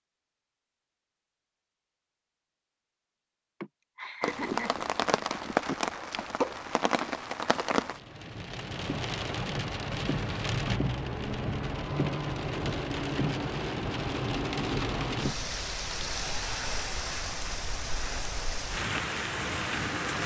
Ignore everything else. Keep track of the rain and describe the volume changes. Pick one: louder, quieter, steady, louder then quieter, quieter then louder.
steady.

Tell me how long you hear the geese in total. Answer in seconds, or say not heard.
not heard.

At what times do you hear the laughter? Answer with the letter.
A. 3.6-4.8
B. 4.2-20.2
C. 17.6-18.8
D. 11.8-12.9
A.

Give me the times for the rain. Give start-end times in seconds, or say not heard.
4.2-20.2.